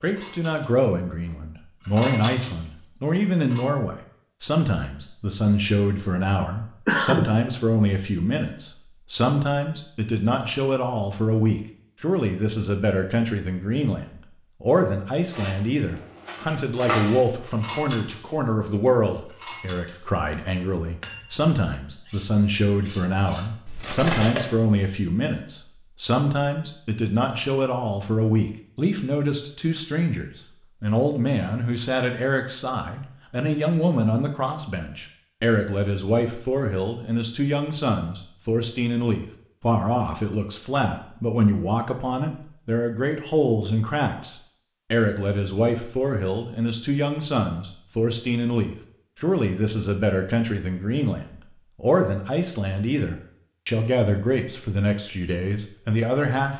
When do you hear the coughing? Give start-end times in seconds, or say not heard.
6.4-7.3.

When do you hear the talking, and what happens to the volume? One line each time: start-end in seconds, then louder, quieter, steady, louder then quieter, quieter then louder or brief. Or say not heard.
0.0-56.5 steady.